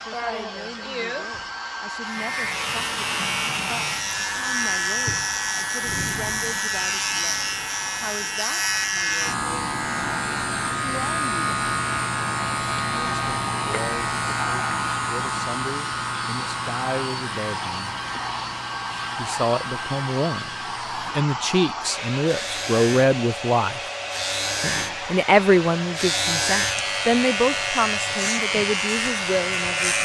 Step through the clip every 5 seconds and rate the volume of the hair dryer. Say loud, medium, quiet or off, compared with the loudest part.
loud, medium, loud, loud, loud, loud.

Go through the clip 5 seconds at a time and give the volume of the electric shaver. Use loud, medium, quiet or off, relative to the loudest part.
loud, loud, loud, medium, medium, loud.